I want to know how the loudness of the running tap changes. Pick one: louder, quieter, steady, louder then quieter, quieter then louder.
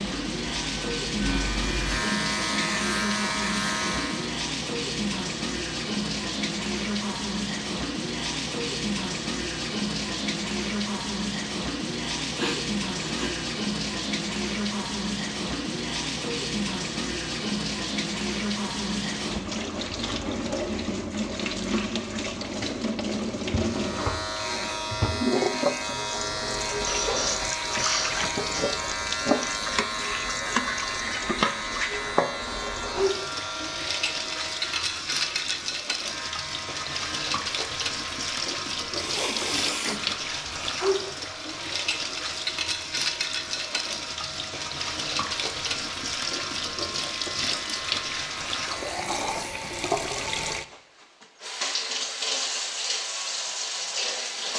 steady.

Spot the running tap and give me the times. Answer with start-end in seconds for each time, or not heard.
0.0-54.5.